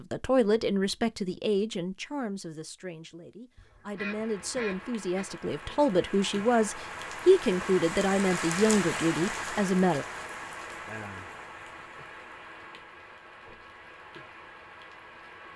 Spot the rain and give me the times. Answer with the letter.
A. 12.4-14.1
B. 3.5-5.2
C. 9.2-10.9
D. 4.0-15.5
D.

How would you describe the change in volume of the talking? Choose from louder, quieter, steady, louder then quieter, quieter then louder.
quieter then louder.